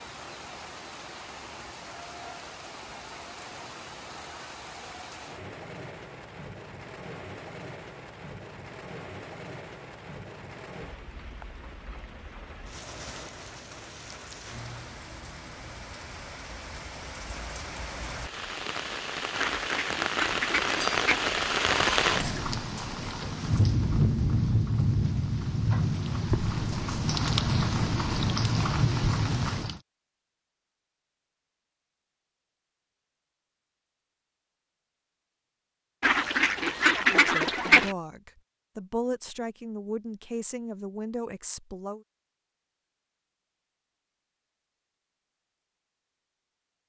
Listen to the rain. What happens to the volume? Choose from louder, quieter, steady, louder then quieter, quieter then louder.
louder.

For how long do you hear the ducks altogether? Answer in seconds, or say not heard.
4 s.